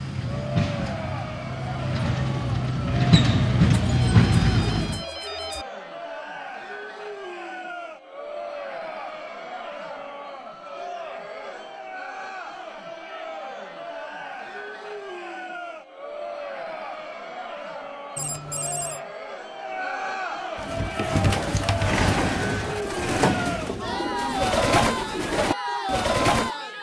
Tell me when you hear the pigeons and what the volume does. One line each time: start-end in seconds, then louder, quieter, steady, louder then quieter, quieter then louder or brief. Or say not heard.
20.6-26.6 steady.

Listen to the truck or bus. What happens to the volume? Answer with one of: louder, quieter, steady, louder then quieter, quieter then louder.
louder.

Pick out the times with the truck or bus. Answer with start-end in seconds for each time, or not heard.
0.0-5.0.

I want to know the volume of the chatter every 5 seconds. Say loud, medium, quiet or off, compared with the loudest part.
medium, medium, medium, medium, loud, loud.